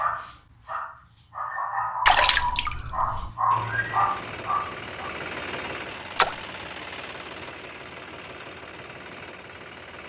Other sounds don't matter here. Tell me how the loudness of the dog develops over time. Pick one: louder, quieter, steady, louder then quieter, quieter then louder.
louder.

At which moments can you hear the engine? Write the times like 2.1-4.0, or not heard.
3.5-10.0.